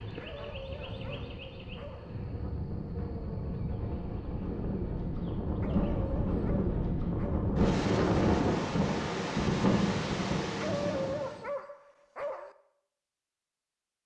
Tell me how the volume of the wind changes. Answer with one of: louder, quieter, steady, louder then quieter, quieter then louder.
louder.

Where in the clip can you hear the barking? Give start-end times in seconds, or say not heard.
0.2-2.1, 5.6-7.5, 10.6-12.6.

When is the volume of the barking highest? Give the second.
11 s.